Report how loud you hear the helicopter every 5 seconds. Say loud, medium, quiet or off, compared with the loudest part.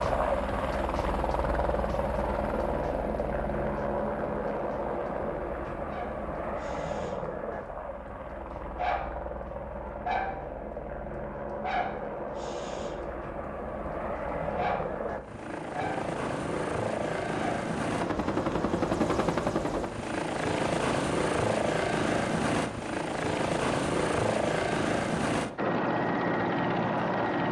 loud, medium, medium, loud, loud, loud.